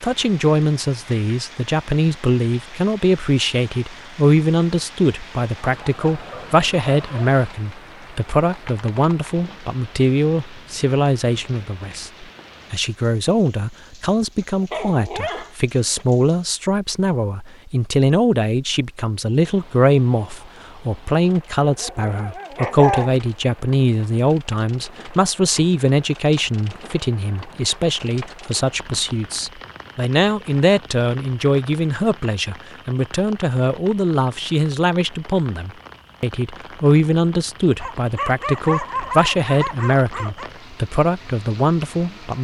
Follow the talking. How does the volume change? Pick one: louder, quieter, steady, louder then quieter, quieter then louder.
steady.